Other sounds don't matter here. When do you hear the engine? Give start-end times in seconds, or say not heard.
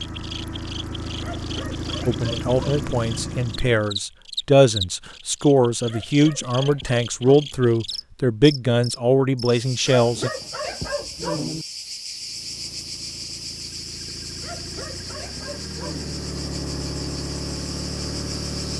0.0-3.9, 12.1-18.7.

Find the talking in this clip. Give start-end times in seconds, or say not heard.
2.0-10.3.